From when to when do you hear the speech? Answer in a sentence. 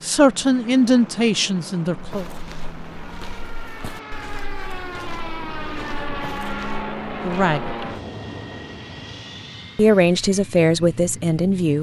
You can hear the speech from 0.0 to 2.2 s, from 7.2 to 7.9 s and from 9.8 to 11.7 s.